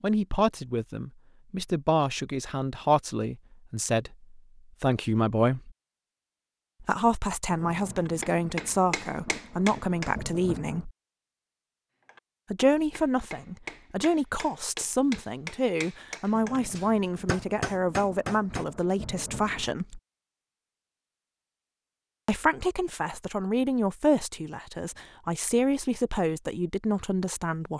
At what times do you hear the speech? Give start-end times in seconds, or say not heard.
0.0-5.7, 6.8-10.9, 12.5-20.0, 22.2-27.7.